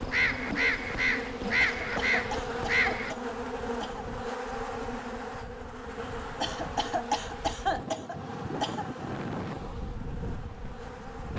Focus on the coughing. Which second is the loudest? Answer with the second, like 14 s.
8 s.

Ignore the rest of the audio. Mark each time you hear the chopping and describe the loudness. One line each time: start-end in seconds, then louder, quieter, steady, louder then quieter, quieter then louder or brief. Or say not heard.
not heard.